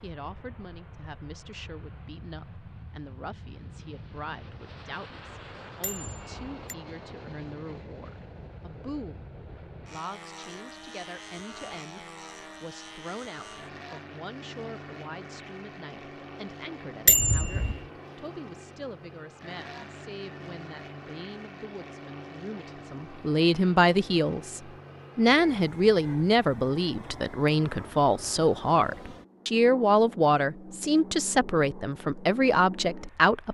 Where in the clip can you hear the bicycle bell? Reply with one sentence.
The bicycle bell can be heard from 5.8 to 6.5 s and from 17.1 to 17.8 s.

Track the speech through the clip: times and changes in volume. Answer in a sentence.
You can hear the speech from 0.0 to 33.4 s, getting louder.